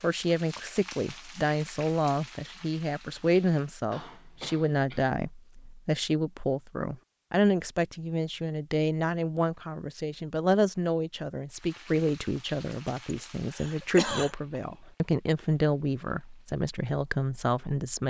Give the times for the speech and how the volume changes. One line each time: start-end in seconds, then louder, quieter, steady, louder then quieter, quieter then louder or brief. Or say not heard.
0.0-18.0 steady.